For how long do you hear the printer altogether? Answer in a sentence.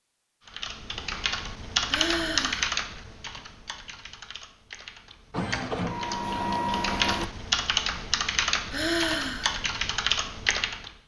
The printer can be heard for 2 seconds in total.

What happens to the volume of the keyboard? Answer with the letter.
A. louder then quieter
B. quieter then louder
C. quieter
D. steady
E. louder
B.